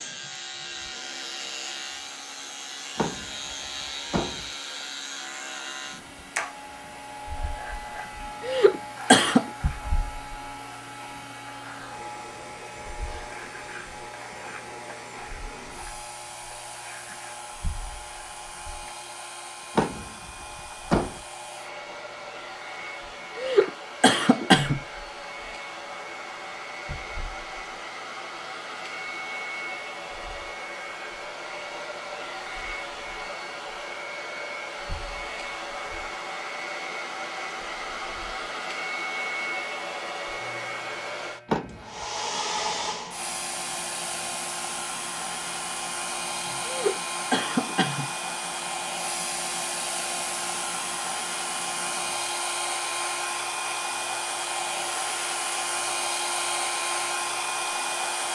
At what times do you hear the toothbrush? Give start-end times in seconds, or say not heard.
not heard.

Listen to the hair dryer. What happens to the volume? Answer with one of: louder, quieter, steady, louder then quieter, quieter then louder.
louder.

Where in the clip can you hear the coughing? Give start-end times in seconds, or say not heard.
8.4-9.4, 23.4-24.8, 46.6-48.0.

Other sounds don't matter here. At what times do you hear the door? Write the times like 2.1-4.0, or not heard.
3.0-4.5, 19.8-21.2, 41.5-42.0.